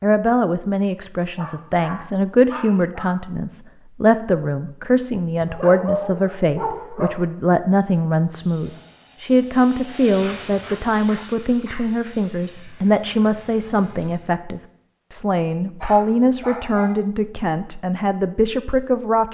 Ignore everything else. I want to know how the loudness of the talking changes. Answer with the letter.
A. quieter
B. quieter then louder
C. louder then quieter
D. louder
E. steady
E.